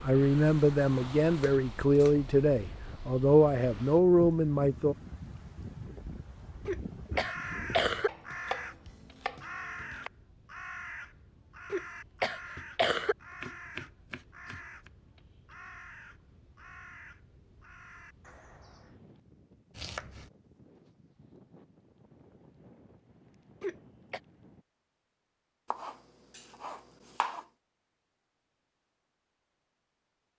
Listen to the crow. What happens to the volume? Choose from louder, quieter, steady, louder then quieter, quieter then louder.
quieter.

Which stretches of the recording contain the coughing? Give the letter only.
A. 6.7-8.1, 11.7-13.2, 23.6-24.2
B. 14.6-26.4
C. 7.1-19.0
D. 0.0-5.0
A.